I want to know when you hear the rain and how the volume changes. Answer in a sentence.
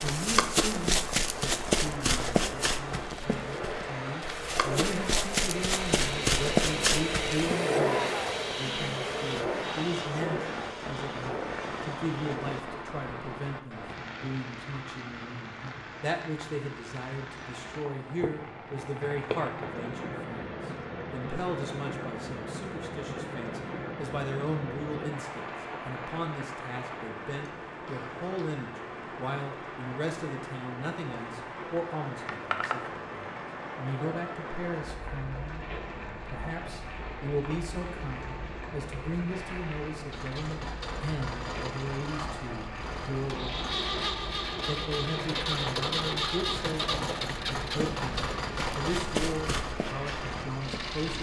The rain can be heard from 0.0 to 51.1 s, at a steady volume.